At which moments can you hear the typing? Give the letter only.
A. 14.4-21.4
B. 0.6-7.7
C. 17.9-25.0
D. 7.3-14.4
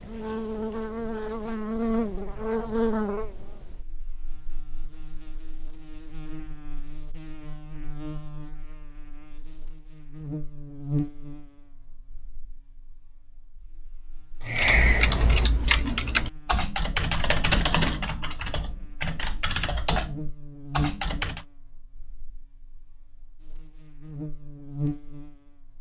A.